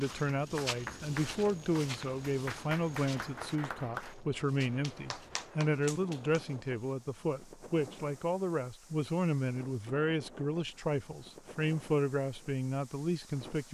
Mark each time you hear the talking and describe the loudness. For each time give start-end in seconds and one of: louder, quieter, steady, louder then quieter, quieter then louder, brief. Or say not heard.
0.0-13.7 steady.